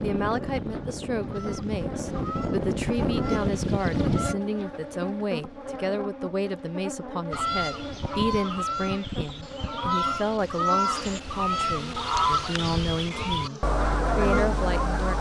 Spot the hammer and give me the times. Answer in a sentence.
You can't hear the hammer here.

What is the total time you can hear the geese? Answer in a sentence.
The geese can be heard for 12 seconds in total.